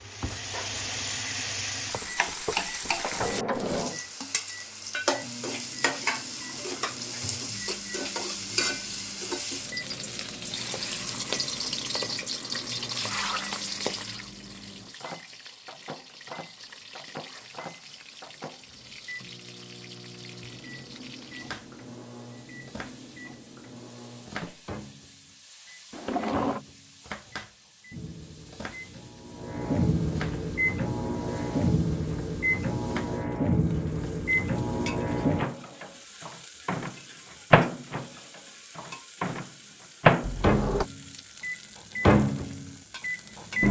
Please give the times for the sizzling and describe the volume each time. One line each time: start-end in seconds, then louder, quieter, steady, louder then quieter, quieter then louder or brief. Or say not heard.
0.0-43.6 quieter.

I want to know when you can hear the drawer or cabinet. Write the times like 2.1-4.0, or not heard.
2.5-4.0, 25.9-26.6, 40.2-40.9.